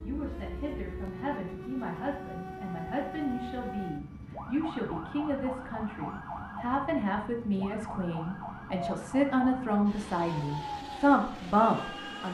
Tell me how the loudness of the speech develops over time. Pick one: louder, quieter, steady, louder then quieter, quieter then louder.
louder.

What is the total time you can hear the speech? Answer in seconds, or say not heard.
12 s.